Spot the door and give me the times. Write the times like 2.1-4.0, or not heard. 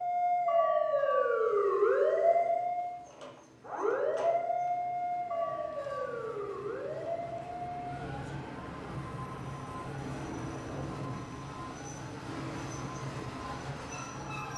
not heard.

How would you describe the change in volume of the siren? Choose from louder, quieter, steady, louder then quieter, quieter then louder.
quieter.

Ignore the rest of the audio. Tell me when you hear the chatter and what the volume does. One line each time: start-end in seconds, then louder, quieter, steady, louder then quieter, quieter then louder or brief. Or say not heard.
not heard.